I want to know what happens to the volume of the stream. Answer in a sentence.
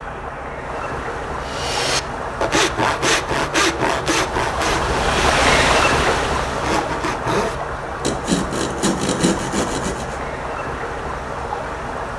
The loudness of the stream goes up, then down.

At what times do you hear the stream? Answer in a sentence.
The stream can be heard from 0.0 to 12.1 s.